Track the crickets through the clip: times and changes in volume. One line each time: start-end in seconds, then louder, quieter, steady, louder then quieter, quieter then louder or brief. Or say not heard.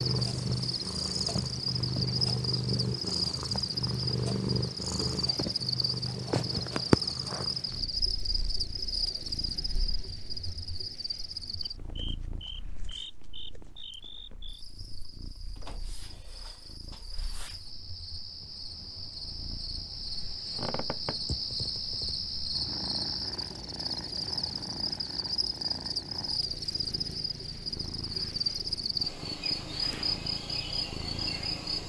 0.0-31.8 quieter then louder.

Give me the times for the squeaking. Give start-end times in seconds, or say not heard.
20.5-21.2.